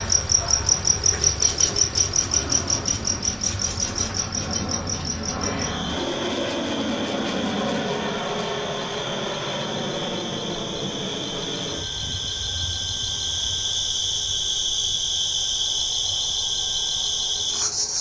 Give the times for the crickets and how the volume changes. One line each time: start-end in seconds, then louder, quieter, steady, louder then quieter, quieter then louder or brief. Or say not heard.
0.0-17.9 quieter then louder.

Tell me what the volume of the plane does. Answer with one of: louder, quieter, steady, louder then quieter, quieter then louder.
louder then quieter.